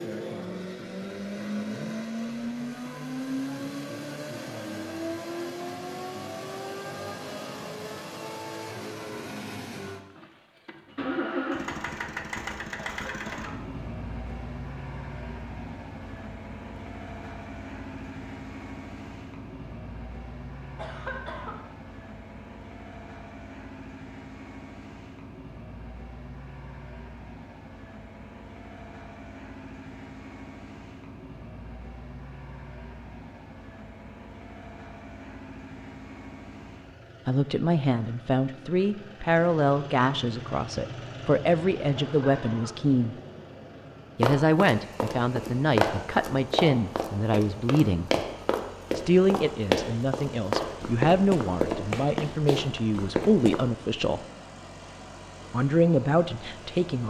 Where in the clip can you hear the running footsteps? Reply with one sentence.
The running footsteps can be heard from 44.2 to 53.7 s.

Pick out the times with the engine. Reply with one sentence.
You can hear the engine from 0.0 to 57.0 s.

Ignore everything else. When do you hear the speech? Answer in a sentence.
You can hear the speech from 37.2 to 43.1 s, from 44.1 to 48.1 s, from 49.0 to 54.2 s and from 55.5 to 57.0 s.